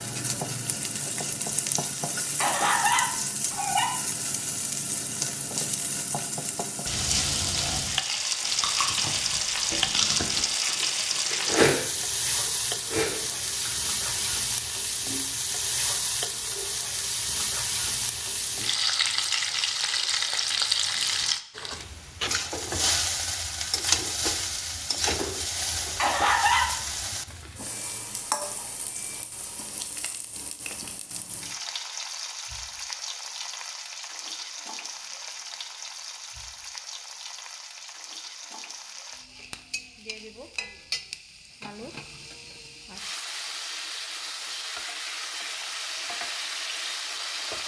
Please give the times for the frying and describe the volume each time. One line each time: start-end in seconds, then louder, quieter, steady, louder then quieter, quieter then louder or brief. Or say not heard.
0.0-47.6 quieter.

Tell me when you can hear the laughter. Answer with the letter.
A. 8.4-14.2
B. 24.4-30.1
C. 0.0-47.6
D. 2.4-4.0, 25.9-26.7
D.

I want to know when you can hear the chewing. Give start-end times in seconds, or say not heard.
8.4-14.2.